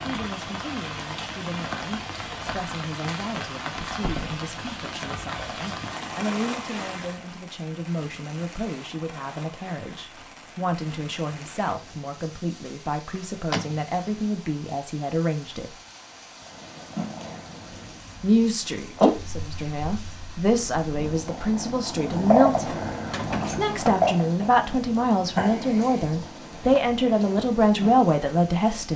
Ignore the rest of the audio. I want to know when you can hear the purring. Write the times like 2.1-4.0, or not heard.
16.4-28.9.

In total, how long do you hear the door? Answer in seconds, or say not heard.
3 s.